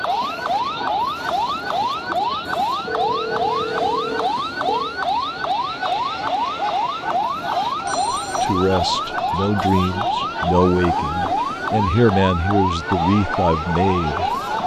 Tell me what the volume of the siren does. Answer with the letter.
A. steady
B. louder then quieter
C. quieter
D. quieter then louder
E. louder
A.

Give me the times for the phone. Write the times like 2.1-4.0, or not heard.
2.9-5.0, 7.8-8.6.